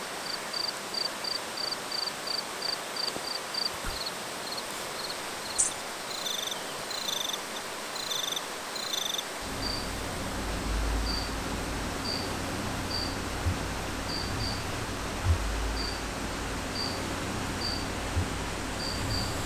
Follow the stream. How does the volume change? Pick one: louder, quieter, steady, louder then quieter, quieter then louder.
steady.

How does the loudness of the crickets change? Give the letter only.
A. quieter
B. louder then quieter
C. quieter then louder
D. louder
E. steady
E.